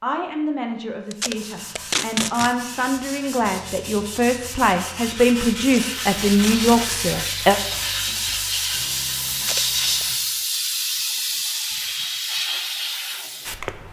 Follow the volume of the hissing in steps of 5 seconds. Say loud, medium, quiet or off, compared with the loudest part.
off, loud, loud.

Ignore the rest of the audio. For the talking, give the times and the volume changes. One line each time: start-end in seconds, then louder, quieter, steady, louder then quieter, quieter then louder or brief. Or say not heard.
0.0-7.5 louder.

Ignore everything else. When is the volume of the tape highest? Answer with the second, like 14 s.
2 s.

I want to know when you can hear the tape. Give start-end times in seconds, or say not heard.
1.1-2.5, 5.6-7.0, 9.3-10.1.